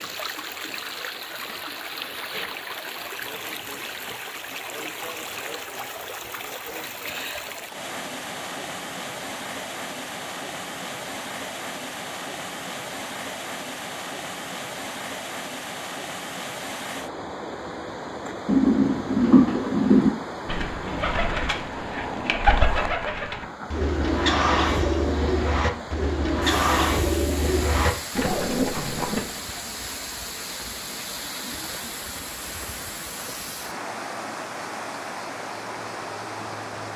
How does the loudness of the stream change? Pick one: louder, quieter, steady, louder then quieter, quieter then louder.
steady.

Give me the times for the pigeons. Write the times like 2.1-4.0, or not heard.
18.4-29.2.